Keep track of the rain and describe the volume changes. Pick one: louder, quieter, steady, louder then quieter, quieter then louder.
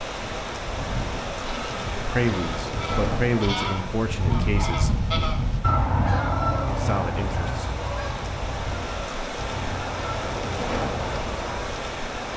quieter then louder.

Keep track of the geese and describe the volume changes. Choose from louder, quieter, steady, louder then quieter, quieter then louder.
louder then quieter.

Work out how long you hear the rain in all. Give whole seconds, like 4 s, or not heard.
12 s.